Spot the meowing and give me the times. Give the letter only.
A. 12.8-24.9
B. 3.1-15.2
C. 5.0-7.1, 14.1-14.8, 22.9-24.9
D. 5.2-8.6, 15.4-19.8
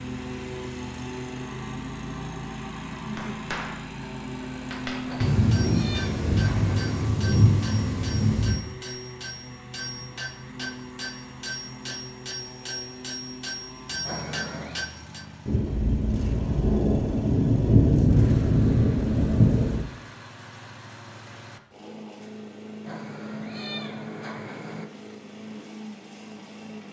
C.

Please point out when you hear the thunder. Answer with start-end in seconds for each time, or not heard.
5.2-8.6, 15.4-19.8.